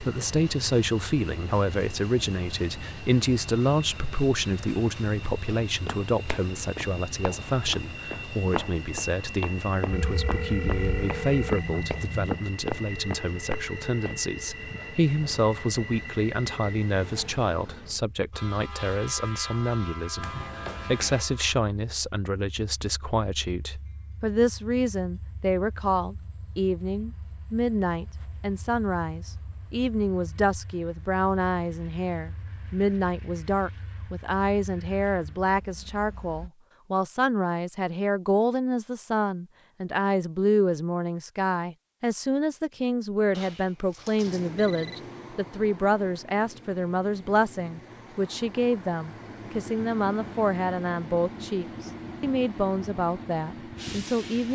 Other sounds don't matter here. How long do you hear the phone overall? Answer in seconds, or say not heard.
5 s.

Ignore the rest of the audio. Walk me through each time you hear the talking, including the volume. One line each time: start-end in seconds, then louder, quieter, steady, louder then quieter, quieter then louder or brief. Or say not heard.
0.0-54.5 steady.